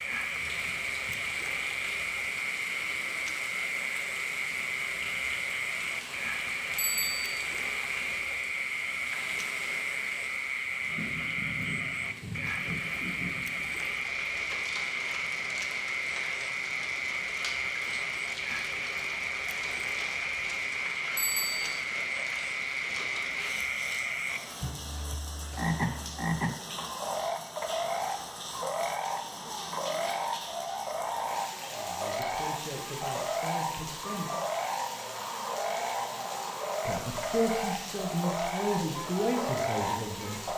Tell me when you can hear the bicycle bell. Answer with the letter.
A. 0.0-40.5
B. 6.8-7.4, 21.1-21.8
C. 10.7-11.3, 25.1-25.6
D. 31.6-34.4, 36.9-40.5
B.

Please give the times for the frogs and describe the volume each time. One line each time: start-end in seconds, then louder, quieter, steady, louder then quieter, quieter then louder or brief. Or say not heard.
0.0-40.5 steady.